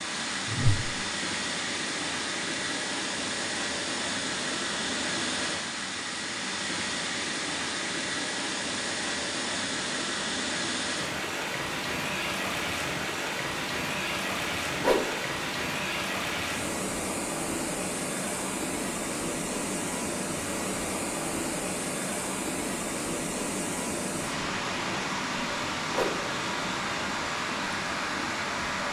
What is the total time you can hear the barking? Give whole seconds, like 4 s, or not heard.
not heard.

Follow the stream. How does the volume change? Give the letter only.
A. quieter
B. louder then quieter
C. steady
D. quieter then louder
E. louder
C.